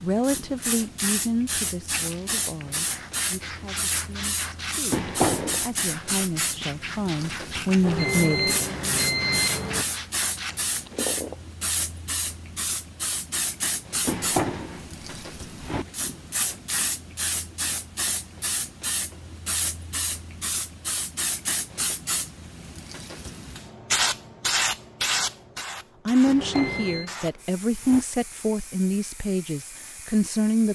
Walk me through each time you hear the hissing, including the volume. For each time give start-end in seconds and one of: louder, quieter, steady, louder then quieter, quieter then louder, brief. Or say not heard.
0.0-30.6 steady.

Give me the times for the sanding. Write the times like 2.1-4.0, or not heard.
1.9-11.3.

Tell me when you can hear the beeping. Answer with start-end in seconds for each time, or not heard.
7.8-9.8, 26.4-27.1.